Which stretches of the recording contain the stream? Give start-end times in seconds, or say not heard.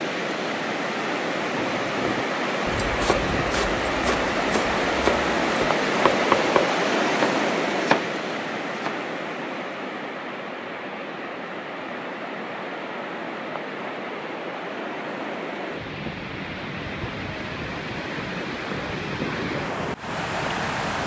0.0-21.0.